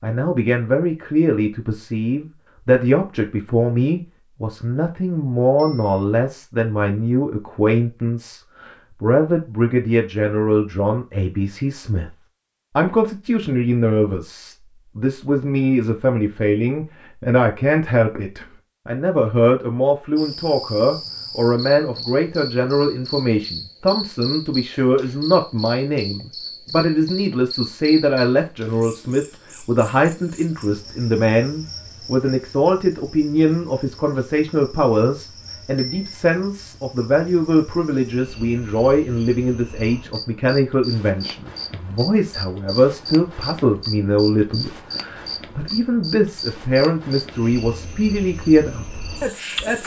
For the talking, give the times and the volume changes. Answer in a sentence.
You can hear the talking from 0.0 to 12.2 s, at a steady volume; and from 12.8 to 49.8 s, at a steady volume.